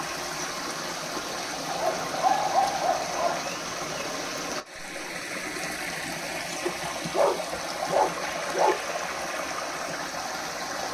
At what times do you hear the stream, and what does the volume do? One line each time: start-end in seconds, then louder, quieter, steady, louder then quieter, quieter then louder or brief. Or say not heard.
0.0-10.8 steady.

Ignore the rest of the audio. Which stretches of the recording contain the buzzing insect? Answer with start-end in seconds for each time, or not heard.
not heard.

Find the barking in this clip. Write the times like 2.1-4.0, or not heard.
1.6-3.5, 6.7-8.8.